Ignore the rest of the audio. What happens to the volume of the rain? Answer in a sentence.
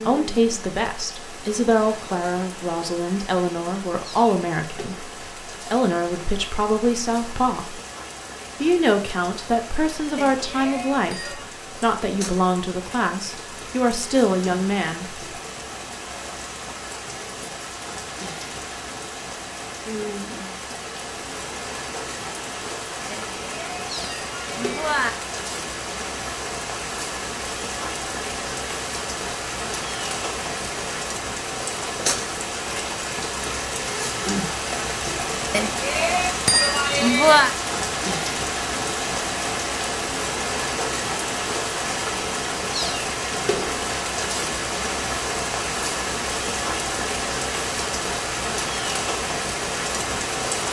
The volume of the rain goes up.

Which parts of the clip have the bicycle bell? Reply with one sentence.
The bicycle bell can be heard from 10.2 to 11.4 s, from 23.1 to 25.1 s and from 35.5 to 37.5 s.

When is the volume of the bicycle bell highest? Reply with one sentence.
The volume of the bicycle bell peaks at 37 seconds.